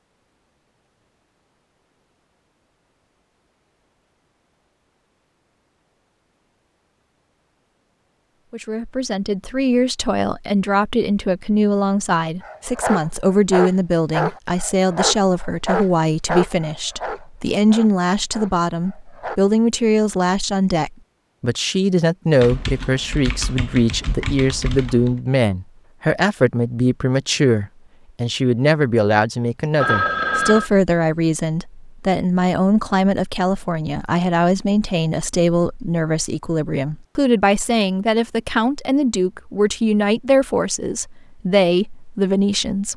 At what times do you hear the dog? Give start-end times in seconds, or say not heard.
12.4-19.4.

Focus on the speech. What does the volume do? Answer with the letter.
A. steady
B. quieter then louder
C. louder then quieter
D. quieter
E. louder
A.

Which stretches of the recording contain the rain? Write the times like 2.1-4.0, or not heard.
not heard.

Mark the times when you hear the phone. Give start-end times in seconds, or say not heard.
29.8-30.7.